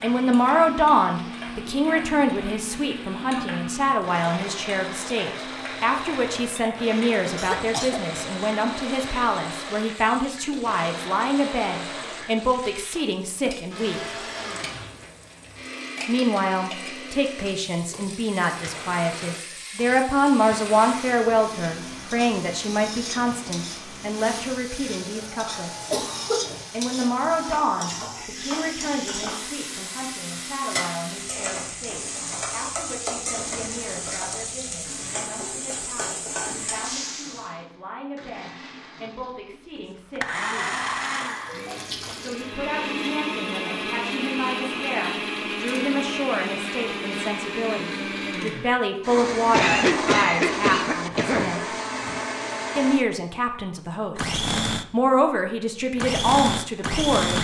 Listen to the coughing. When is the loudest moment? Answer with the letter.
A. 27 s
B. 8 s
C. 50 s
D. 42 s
C.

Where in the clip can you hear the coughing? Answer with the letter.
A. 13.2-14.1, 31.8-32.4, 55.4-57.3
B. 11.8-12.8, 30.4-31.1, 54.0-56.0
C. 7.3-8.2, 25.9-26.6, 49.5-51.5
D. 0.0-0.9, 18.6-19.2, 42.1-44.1
C.